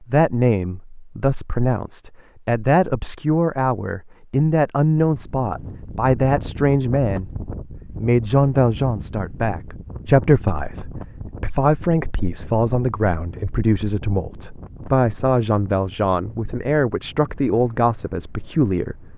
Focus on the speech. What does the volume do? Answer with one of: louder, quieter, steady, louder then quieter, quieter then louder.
steady.